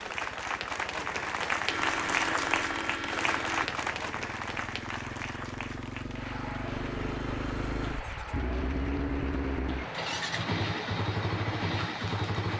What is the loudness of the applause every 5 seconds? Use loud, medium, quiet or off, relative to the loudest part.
loud, medium, medium.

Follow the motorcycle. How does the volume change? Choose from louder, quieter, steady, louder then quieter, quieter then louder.
louder.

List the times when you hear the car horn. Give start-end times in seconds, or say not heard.
1.6-3.7, 6.7-8.0.